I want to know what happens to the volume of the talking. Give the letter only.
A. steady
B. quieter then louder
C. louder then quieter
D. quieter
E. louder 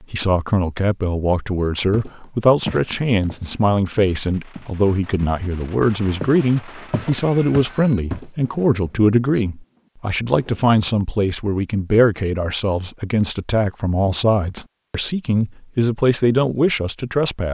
A.